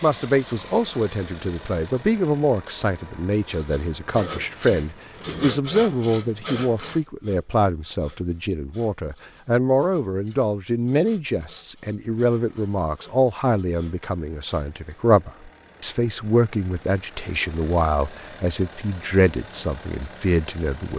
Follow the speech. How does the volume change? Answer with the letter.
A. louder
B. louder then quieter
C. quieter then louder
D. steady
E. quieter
D.